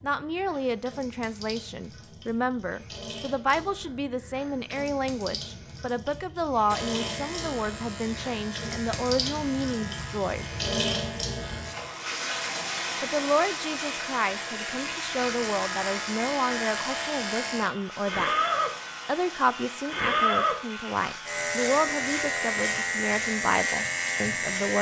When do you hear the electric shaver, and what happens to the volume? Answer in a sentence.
You can hear the electric shaver from 6.7 to 24.7 s, getting louder.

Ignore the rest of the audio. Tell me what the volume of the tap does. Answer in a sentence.
The loudness of the tap goes up, then down.